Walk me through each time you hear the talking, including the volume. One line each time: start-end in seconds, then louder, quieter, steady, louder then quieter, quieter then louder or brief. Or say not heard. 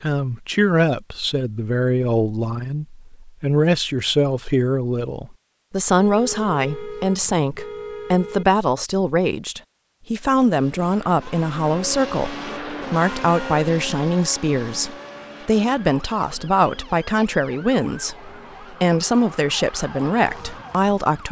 0.0-21.2 steady.